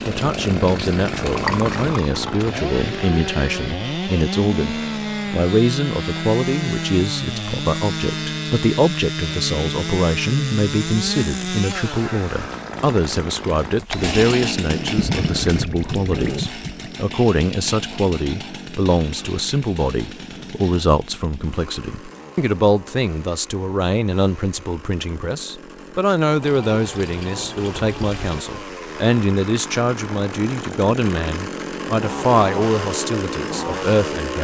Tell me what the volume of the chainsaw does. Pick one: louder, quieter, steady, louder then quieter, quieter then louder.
quieter then louder.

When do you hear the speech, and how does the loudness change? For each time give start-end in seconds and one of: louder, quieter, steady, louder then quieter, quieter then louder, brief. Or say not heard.
0.1-34.3 steady.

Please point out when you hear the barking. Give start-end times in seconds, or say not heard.
not heard.